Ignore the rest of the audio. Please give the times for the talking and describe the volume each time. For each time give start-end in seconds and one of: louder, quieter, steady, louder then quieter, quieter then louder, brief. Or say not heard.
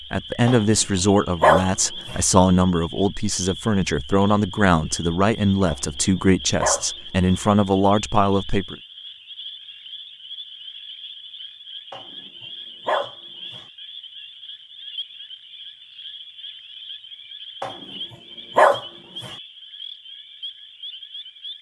0.1-8.8 steady.